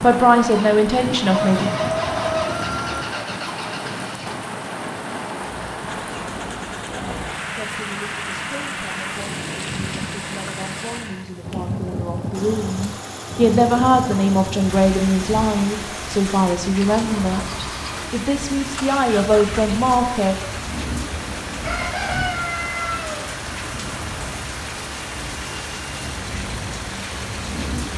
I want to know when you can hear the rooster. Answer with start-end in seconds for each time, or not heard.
1.3-3.0, 21.6-23.2.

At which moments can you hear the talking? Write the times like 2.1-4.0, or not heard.
0.0-1.7, 7.5-20.4.